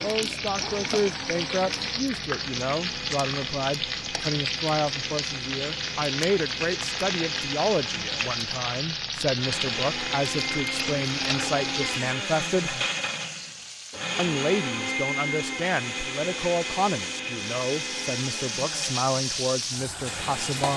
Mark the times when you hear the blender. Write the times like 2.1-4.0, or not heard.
0.0-20.7.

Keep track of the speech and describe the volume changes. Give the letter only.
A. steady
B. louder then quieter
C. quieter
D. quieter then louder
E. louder
A.